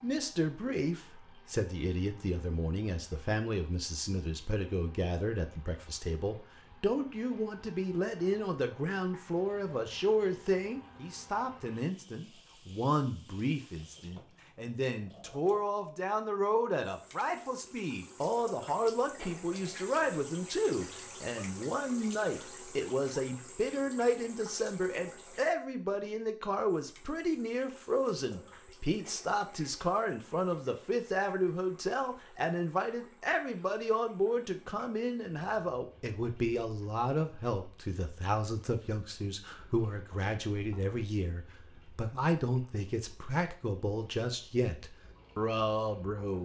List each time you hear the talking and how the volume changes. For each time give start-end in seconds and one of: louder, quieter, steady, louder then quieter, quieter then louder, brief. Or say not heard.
0.0-46.3 steady.